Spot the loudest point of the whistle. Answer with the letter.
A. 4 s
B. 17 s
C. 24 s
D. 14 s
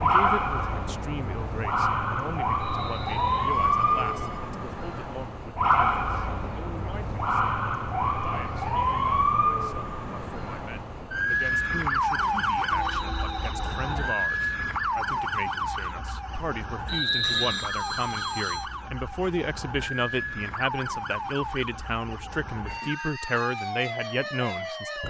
B.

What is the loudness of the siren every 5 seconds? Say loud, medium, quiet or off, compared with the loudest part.
loud, loud, loud, medium, medium.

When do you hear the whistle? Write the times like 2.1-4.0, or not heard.
2.6-3.5, 12.9-14.2, 16.9-17.6.